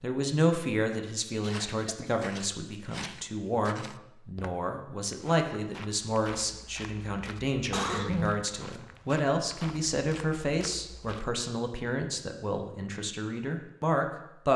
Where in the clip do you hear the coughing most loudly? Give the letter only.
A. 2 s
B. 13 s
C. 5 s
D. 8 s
D.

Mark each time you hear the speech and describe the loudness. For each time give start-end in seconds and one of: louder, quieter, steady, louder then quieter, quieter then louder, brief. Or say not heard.
0.0-14.5 steady.